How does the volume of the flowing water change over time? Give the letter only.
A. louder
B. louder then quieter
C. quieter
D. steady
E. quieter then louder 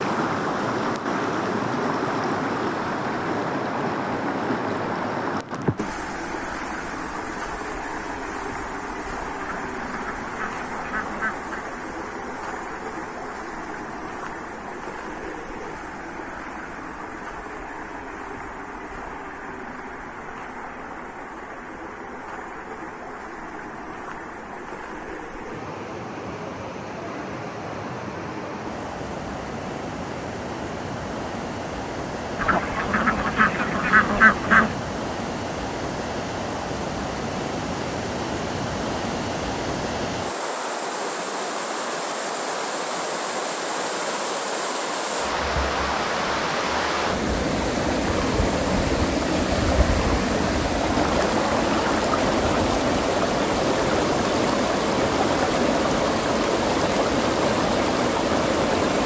E.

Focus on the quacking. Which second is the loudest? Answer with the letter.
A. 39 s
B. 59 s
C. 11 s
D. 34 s
D.